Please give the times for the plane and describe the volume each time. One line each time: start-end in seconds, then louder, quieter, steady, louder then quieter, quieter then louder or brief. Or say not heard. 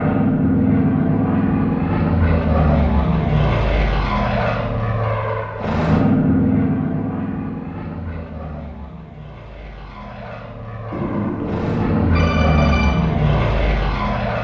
0.0-14.3 quieter then louder.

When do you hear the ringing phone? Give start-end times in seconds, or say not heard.
10.9-12.9.